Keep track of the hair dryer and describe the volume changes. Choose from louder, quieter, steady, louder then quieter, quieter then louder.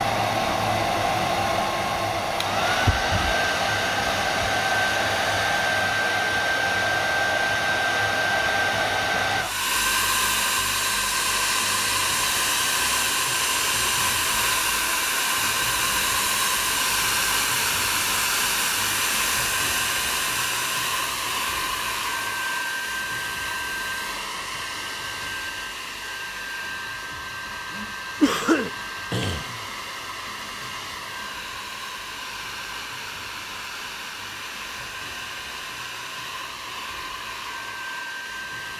quieter.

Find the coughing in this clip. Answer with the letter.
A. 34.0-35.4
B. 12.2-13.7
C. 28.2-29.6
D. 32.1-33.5
C.